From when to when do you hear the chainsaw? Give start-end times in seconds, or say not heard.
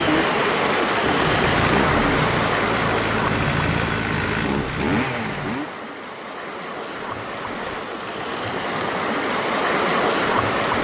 0.0-5.8.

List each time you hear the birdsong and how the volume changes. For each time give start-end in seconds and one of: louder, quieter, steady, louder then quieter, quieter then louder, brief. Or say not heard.
not heard.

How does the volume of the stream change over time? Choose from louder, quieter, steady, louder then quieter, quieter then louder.
quieter then louder.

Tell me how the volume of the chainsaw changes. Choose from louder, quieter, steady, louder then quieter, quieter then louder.
steady.